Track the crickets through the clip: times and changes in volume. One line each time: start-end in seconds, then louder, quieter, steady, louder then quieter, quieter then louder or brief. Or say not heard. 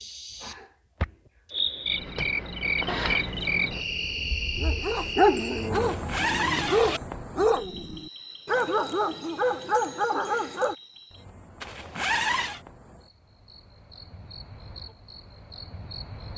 0.0-16.3 quieter.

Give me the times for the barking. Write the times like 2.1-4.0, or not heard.
4.5-10.8.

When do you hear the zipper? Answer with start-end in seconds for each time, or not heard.
2.9-3.8, 5.7-7.0, 11.6-12.6.